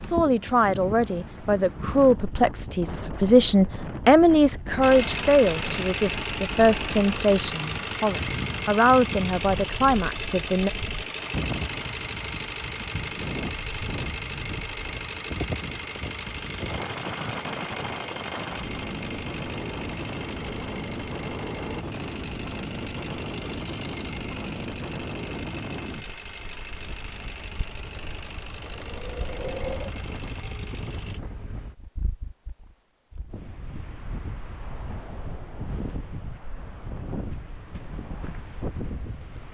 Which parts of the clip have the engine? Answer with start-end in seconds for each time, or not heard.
4.8-31.2.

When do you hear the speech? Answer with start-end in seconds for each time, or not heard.
0.0-10.7.